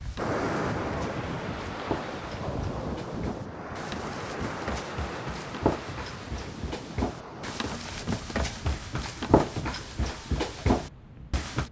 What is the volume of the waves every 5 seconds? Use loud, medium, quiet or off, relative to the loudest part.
loud, medium, quiet.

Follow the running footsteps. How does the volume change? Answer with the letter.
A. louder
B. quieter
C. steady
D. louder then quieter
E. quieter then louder
A.